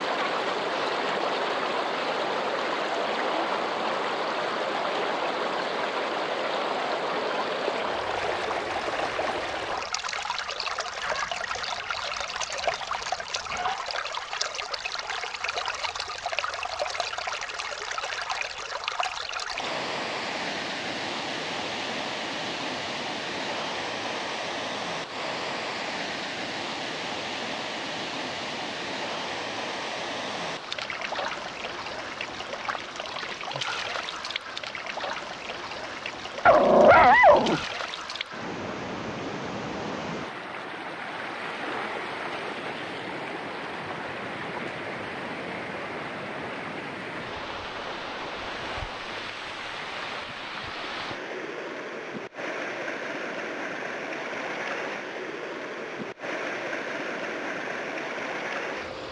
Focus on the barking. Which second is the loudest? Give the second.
37 s.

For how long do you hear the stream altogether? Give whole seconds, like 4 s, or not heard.
59 s.